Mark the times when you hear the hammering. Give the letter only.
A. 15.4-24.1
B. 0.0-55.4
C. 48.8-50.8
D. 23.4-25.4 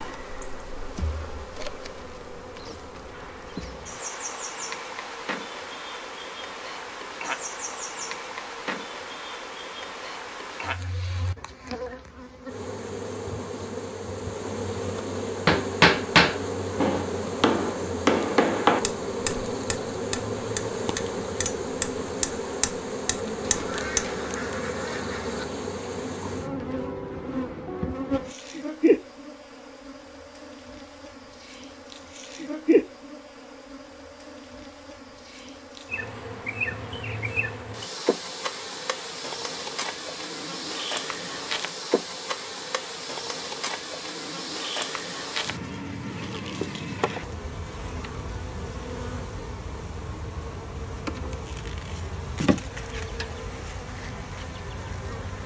A.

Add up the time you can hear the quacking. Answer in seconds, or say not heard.
2 s.